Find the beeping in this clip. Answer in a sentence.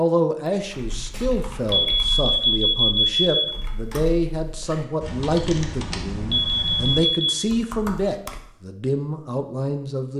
The beeping can be heard from 1.7 to 3.5 s and from 6.3 to 7.5 s.